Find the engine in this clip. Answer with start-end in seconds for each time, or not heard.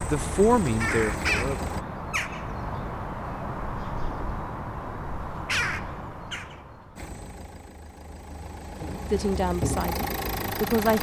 0.0-1.9, 7.0-10.9.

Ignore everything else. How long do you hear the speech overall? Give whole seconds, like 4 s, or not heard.
3 s.